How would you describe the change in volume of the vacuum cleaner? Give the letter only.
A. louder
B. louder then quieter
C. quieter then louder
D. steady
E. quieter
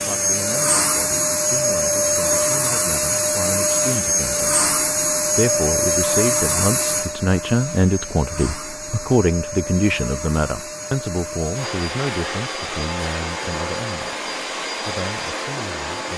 E.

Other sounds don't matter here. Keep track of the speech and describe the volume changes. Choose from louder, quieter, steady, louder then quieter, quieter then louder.
louder then quieter.